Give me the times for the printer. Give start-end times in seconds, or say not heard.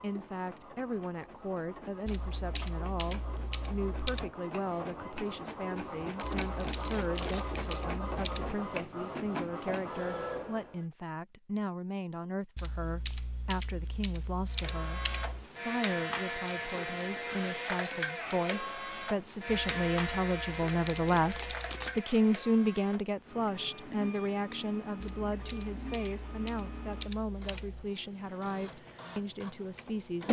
0.0-10.8, 14.5-30.2.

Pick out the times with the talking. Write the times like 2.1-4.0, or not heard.
0.0-30.2.